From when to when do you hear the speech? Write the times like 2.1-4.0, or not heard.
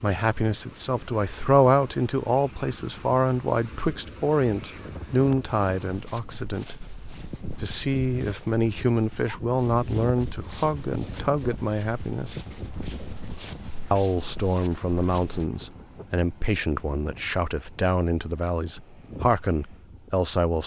0.0-6.8, 7.5-12.3, 13.9-20.6.